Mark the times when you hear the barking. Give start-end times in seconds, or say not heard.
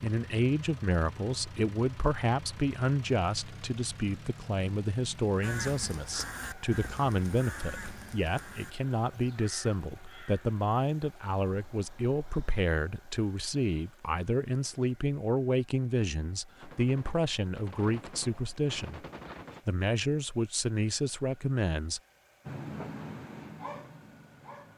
22.4-24.7.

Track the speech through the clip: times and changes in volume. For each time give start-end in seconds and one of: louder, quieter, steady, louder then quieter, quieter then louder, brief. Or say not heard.
0.0-19.0 steady
19.6-22.0 brief.